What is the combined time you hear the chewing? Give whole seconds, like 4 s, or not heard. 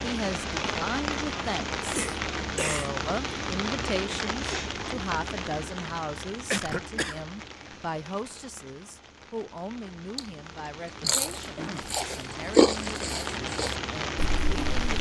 4 s.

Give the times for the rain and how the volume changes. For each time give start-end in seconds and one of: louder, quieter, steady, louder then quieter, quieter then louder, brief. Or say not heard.
0.0-14.9 quieter then louder.